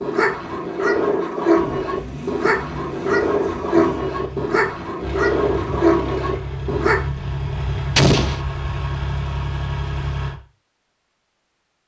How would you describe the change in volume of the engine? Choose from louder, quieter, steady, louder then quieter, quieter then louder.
louder.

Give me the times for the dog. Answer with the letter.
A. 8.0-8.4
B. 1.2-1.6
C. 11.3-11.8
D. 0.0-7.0
D.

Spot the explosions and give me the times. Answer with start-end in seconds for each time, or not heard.
8.0-8.4.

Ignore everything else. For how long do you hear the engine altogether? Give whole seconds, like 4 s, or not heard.
9 s.